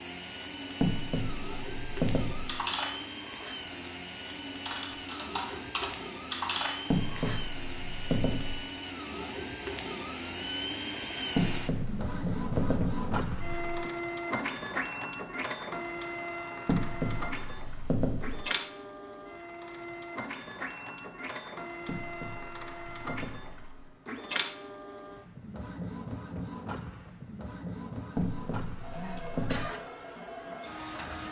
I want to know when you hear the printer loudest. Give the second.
13 s.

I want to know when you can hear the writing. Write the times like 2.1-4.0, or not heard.
0.8-2.6, 6.9-8.7, 11.3-13.9, 16.6-18.5, 21.9-23.9, 28.1-29.7.